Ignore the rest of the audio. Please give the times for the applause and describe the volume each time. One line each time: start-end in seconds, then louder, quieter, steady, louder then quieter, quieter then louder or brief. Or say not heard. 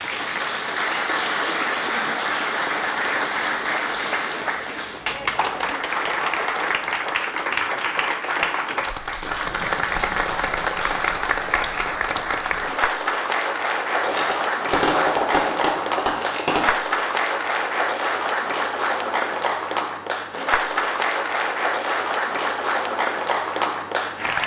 0.0-24.4 steady.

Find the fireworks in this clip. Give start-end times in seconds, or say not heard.
14.0-16.8.